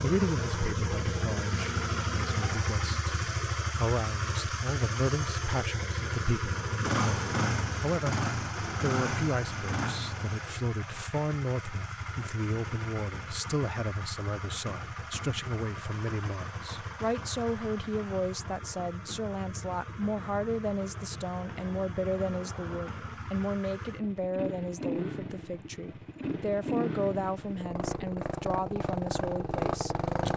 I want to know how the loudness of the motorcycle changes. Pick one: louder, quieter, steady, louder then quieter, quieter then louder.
quieter then louder.